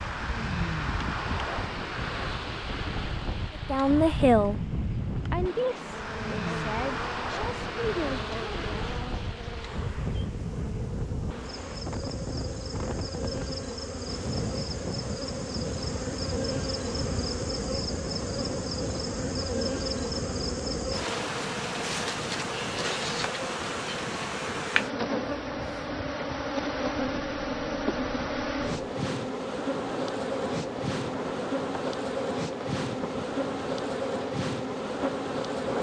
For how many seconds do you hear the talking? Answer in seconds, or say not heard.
4 s.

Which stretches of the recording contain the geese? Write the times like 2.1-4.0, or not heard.
not heard.